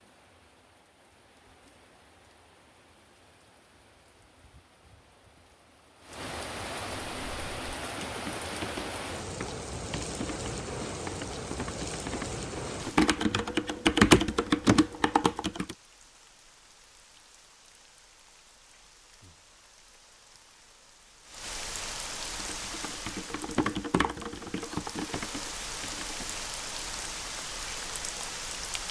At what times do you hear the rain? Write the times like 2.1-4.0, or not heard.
0.0-28.8.